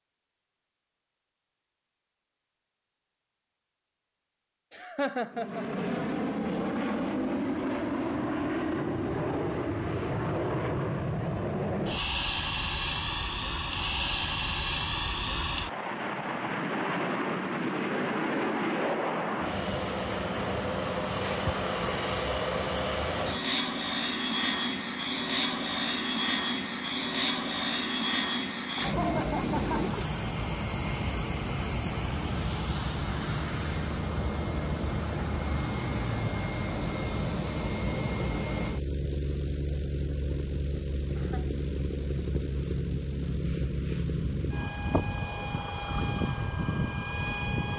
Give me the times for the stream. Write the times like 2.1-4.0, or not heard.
not heard.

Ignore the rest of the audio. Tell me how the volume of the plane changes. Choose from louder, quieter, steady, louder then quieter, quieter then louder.
steady.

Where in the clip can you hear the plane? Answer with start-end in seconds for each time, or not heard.
5.3-47.7.